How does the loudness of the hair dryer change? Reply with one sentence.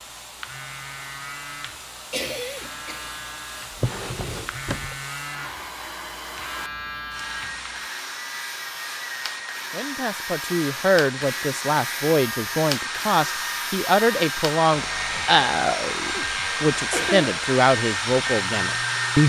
The loudness of the hair dryer goes up.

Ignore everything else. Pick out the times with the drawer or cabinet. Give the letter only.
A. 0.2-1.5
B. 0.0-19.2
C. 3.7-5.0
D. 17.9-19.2
C.